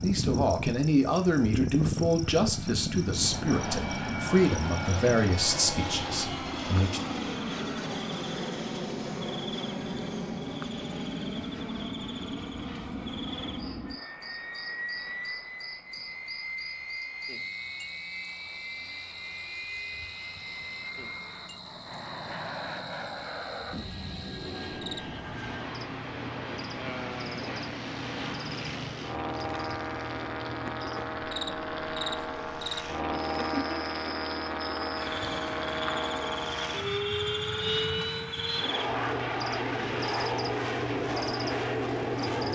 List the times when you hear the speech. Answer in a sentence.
The speech can be heard from 0.0 to 7.0 s.